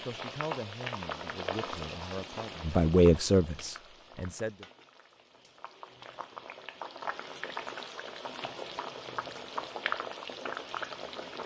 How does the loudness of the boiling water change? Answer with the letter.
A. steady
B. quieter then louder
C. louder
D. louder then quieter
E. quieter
B.